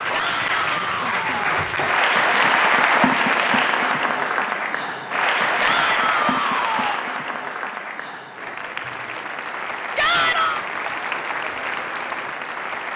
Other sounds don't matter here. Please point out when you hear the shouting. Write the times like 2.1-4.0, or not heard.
0.1-1.6, 5.5-7.0, 9.9-10.7.